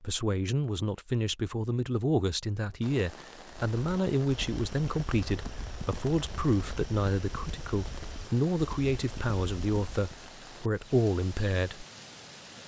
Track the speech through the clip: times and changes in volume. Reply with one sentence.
You can hear the speech from 0.0 to 11.8 s, at a steady volume.